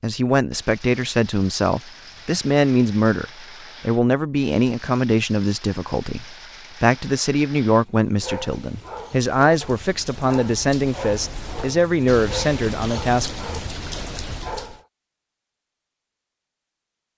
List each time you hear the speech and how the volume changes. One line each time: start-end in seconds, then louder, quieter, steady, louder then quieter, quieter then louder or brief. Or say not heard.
0.0-13.3 steady.